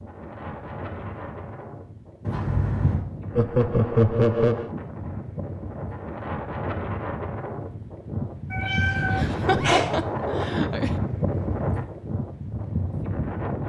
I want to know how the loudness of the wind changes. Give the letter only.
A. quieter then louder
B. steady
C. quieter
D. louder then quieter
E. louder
E.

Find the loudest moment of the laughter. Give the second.
4 s.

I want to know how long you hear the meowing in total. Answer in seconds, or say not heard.
2 s.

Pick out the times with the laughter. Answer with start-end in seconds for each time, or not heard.
3.4-4.7, 9.2-10.9.